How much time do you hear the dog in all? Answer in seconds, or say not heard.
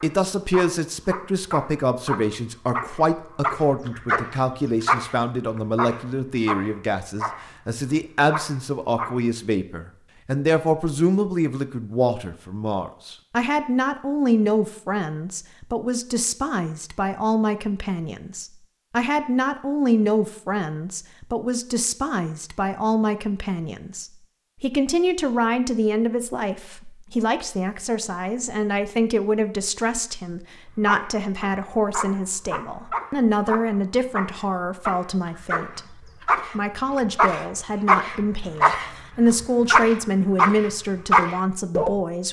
20 s.